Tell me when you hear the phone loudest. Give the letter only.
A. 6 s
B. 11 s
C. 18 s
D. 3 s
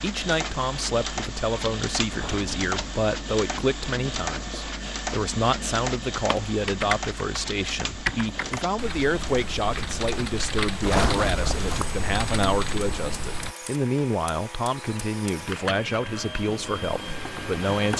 B.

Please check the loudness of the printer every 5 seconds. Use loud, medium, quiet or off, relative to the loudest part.
loud, loud, medium, loud.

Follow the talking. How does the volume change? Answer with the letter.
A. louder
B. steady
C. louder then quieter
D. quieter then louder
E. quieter
B.